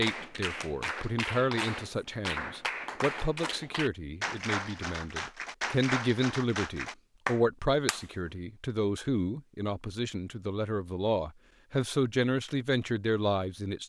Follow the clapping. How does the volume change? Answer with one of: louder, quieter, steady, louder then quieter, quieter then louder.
steady.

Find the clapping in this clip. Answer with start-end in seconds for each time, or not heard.
0.0-8.1.